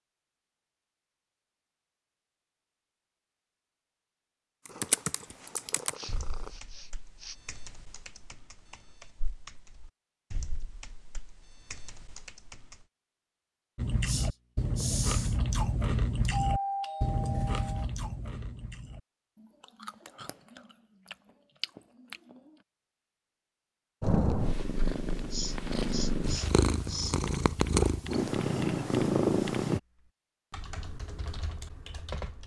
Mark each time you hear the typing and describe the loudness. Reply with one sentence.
You can hear the typing from 4.7 to 12.8 s, getting quieter; and from 27.2 to 32.4 s, at a steady volume.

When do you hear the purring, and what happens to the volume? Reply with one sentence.
The purring can be heard briefly from 4.7 to 6.6 s; and from 24.0 to 29.8 s, getting louder.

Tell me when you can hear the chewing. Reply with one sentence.
You can hear the chewing from 13.8 to 22.6 s.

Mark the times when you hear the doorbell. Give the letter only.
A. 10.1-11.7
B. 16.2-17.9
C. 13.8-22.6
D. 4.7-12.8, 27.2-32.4
B.